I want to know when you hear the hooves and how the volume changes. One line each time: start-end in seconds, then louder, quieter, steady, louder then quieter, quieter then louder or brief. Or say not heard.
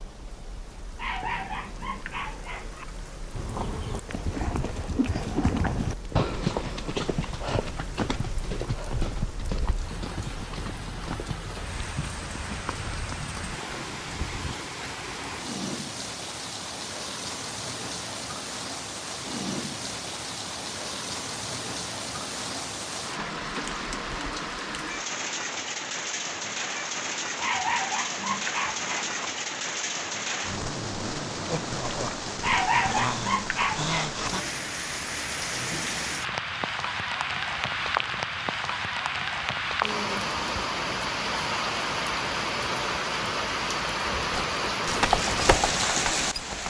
3.3-14.6 quieter
44.3-46.6 brief.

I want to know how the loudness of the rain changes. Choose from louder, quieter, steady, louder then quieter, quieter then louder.
louder.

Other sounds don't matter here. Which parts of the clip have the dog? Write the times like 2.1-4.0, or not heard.
0.9-2.9, 27.4-29.2, 32.4-34.3.